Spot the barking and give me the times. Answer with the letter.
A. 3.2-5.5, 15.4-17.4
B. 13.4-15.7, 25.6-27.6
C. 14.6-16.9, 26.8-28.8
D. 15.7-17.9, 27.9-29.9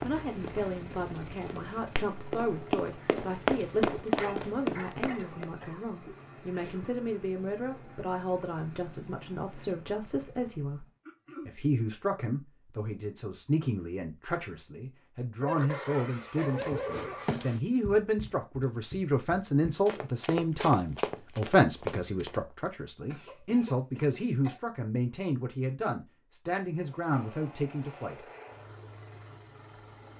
A.